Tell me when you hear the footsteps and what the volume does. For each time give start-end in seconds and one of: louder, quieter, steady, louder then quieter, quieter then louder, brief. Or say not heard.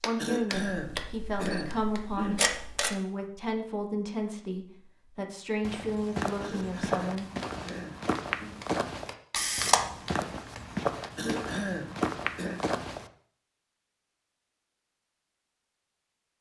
5.6-13.1 steady.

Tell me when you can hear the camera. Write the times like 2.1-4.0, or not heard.
0.7-3.0, 9.3-9.8.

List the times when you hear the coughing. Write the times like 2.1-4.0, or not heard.
0.1-2.4, 6.4-8.6, 11.2-12.6.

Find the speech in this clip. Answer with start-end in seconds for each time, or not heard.
0.0-7.2.